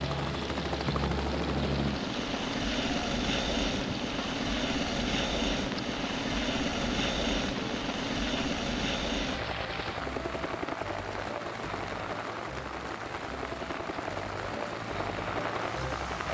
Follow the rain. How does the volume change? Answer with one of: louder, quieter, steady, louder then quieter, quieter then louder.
steady.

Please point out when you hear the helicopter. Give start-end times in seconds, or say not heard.
0.0-16.2.